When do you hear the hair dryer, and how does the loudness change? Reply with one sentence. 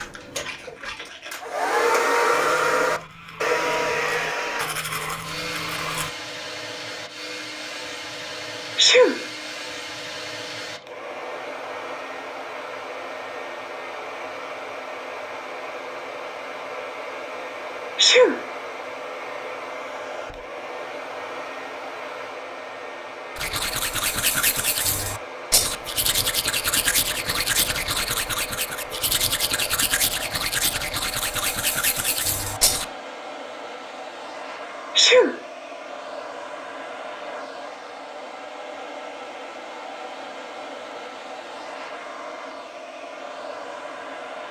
You can hear the hair dryer from 0.0 to 44.4 s, getting quieter.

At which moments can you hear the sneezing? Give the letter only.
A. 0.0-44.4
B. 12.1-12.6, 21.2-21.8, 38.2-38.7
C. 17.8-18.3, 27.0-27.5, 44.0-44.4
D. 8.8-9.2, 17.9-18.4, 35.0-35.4
D.